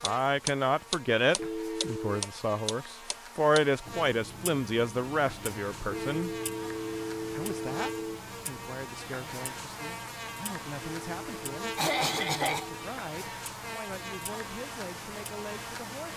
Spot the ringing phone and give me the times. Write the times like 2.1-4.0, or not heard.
1.4-2.1, 5.9-8.2, 10.8-12.9.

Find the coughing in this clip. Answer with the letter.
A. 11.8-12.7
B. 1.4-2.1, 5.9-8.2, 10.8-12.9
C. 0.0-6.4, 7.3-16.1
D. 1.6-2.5
A.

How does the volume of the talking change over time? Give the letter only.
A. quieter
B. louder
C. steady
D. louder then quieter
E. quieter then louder
A.